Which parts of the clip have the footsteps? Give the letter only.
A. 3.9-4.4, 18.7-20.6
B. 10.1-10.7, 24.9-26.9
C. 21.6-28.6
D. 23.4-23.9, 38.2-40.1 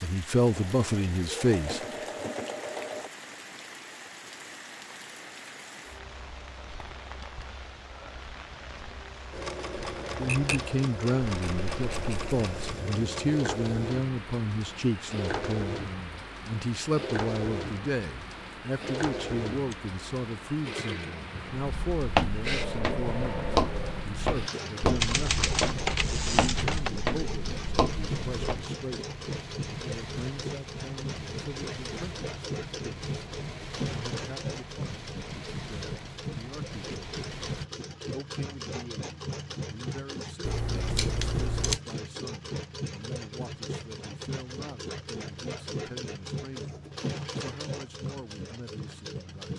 C.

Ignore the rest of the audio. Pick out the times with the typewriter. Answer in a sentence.
The typewriter can be heard from 10.1 to 10.7 s and from 24.9 to 26.9 s.